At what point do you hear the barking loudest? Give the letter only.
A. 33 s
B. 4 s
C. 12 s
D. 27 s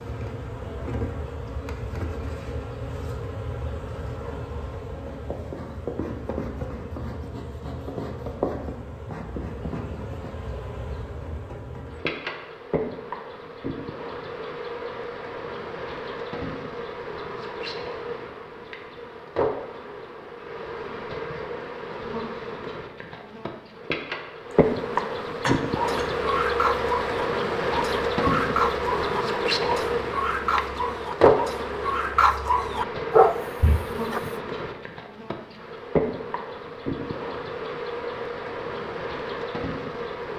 A.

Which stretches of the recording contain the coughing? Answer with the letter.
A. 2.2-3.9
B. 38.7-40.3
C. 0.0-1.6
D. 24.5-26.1
D.